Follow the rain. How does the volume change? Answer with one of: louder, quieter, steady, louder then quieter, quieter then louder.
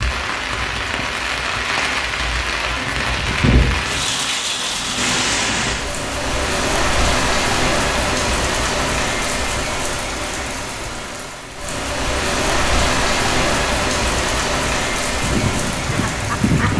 steady.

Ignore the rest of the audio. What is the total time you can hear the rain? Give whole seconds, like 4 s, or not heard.
17 s.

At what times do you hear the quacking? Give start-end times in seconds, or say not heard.
15.2-16.7.